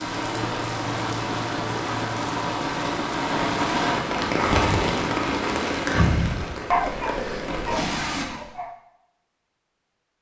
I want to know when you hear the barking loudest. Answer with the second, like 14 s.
7 s.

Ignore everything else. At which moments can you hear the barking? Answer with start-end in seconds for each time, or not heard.
5.8-8.8.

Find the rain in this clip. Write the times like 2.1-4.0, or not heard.
0.0-8.2.